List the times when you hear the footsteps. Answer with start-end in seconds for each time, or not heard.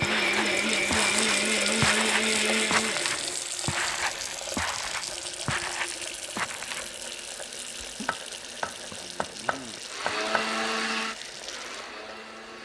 0.0-7.0.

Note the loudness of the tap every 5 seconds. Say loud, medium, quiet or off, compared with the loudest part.
loud, medium, medium.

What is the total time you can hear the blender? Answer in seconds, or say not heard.
6 s.